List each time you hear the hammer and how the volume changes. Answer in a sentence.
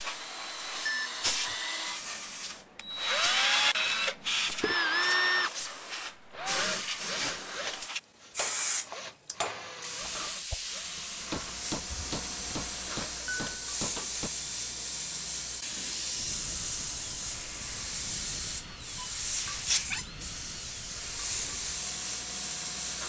You can hear the hammer from 8.3 to 14.3 s, getting quieter then louder.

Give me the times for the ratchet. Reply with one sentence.
You can't hear the ratchet here.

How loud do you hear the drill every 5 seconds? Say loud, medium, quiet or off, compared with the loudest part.
loud, loud, quiet, quiet, quiet.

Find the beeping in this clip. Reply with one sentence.
The beeping can be heard from 0.8 to 1.6 s.